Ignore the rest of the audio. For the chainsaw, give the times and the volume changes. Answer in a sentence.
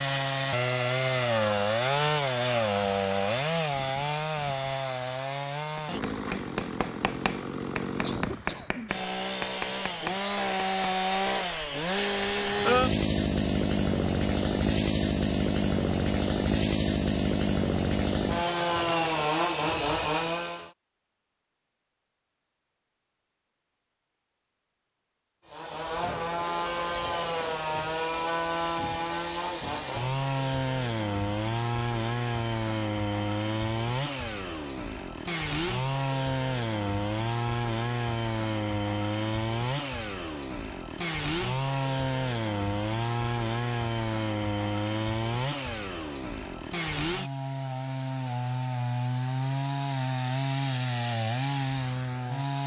The chainsaw can be heard from 0.0 to 20.7 s, getting quieter then louder; and from 25.4 to 52.6 s, at a steady volume.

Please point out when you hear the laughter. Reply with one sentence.
You can hear the laughter from 8.0 to 8.9 s.